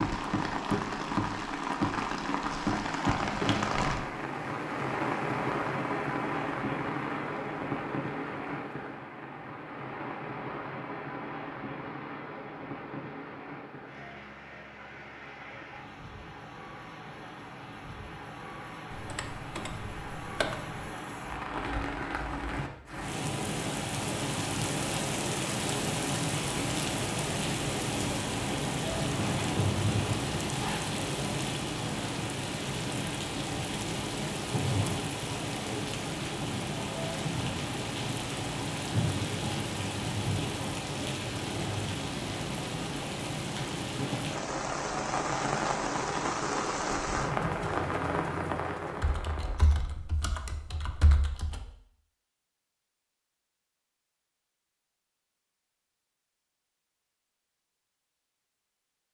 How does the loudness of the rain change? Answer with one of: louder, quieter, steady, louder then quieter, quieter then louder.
quieter then louder.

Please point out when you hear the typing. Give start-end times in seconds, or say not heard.
18.9-20.9, 49.0-51.6.